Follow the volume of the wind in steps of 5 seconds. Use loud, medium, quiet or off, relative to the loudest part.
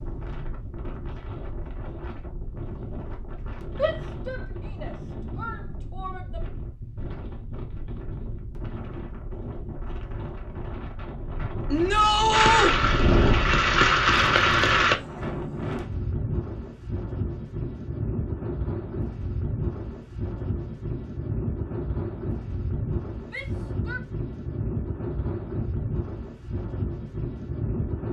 medium, medium, loud, loud, loud, loud.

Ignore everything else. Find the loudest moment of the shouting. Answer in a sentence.
The loudest moment of the shouting is at 12 seconds.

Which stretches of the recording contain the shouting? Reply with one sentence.
You can hear the shouting from 3.8 to 6.4 s, from 11.7 to 12.8 s and from 23.2 to 24.1 s.